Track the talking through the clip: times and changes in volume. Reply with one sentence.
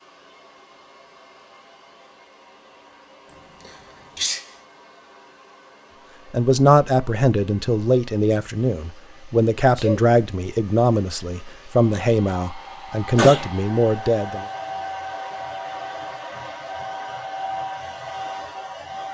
You can hear the talking from 6.3 to 14.4 s, at a steady volume.